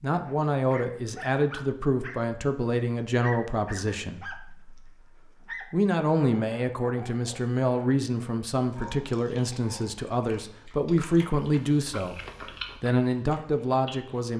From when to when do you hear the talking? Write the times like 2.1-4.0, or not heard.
0.0-14.3.